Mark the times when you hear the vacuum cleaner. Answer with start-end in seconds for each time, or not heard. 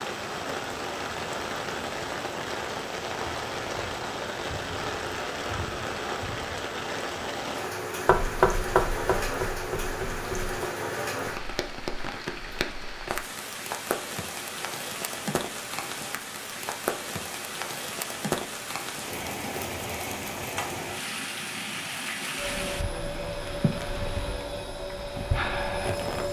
22.4-26.2.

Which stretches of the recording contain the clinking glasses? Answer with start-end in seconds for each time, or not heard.
not heard.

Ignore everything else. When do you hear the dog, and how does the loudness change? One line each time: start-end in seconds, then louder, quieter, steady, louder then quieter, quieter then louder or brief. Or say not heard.
not heard.